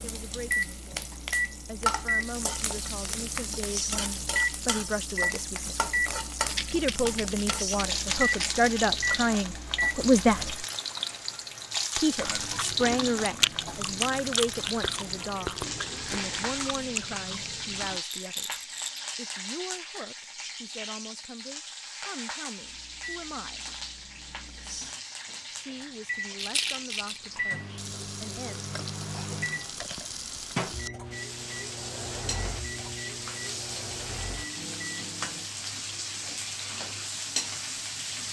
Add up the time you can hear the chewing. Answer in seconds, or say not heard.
7 s.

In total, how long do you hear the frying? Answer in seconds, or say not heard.
38 s.